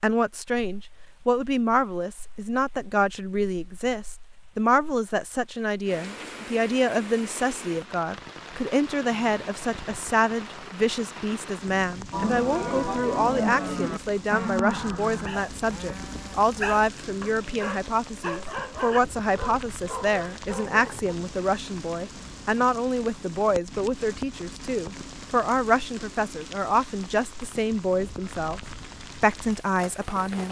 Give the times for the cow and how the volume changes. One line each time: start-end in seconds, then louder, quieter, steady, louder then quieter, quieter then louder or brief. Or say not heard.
12.1-17.6 quieter.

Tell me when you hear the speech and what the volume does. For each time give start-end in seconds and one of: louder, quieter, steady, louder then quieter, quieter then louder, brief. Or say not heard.
0.0-28.6 steady
29.2-30.4 brief.